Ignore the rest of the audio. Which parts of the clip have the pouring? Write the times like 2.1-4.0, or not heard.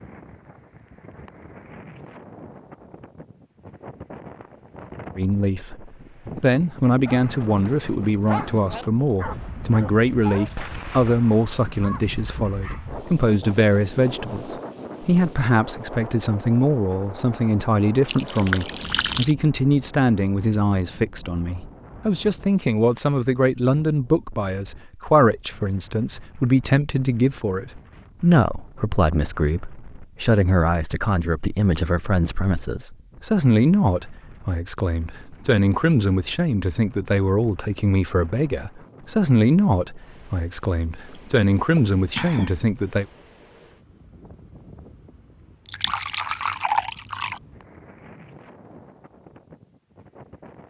18.1-19.4, 45.6-47.4.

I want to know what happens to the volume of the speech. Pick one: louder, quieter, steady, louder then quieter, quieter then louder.
steady.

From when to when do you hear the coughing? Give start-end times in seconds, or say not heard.
41.1-42.6.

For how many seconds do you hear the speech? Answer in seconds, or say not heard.
38 s.